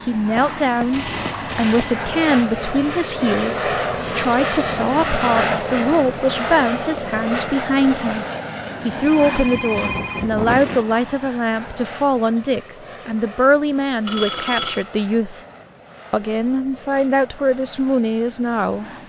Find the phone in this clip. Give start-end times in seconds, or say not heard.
0.3-2.0, 9.0-10.8, 14.1-14.8.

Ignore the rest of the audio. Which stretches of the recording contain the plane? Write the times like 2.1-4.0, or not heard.
0.0-19.0.